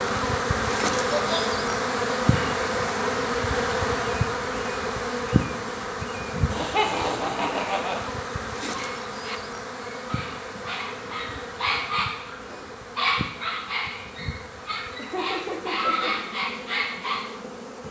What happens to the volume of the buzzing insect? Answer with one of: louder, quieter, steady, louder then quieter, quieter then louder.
quieter.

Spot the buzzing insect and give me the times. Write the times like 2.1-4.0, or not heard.
0.0-17.8.